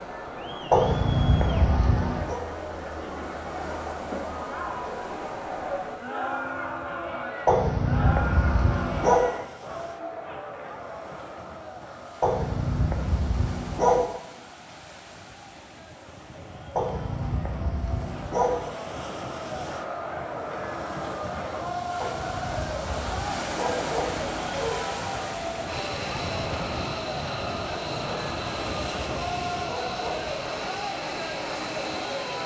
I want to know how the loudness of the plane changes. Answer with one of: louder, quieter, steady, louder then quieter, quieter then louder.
steady.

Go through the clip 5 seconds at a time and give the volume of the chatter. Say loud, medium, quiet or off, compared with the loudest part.
loud, loud, medium, medium, loud, loud, loud.